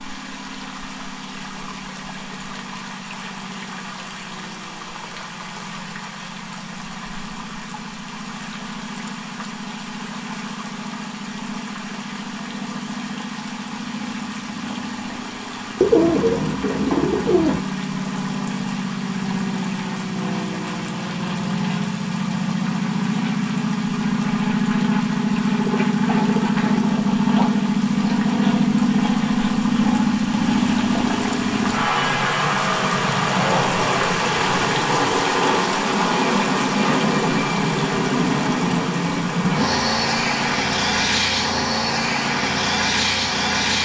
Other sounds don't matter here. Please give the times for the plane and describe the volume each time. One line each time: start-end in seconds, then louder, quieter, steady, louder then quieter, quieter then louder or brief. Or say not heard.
0.0-43.8 louder.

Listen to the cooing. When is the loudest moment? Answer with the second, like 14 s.
16 s.